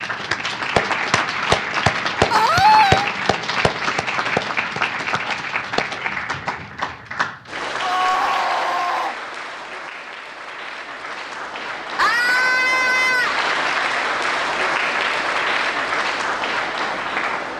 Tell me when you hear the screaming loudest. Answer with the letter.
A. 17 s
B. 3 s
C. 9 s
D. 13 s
B.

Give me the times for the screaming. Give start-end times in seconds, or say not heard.
2.3-3.1, 7.8-9.2, 11.9-13.3.